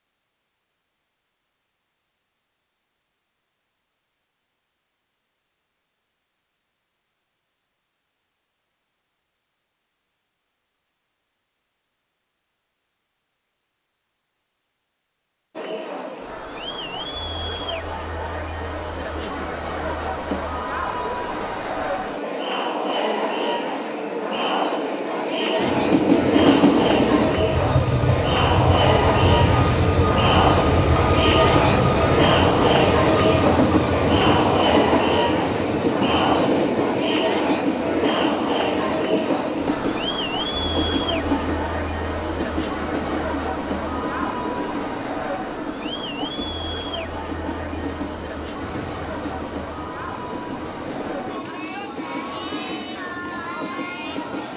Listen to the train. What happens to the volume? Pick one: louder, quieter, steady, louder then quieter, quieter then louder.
quieter.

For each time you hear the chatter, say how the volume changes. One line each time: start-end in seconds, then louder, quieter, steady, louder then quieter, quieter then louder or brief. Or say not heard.
15.6-54.5 louder then quieter.